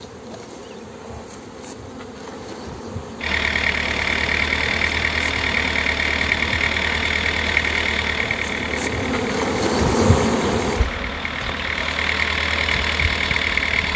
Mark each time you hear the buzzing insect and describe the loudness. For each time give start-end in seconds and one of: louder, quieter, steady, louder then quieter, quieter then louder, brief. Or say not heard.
0.0-13.9 louder then quieter.